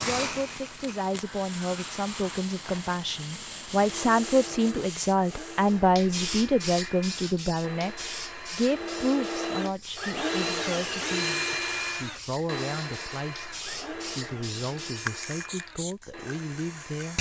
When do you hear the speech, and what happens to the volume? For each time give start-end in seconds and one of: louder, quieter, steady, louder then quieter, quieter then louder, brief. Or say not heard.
0.0-17.1 louder then quieter.